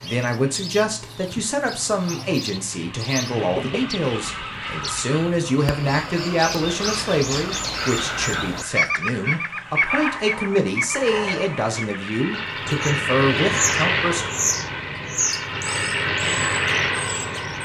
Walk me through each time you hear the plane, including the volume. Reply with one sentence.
The plane can be heard from 0.0 to 17.5 s, getting louder.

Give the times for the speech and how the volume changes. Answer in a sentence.
The speech can be heard from 0.0 to 14.3 s, at a steady volume.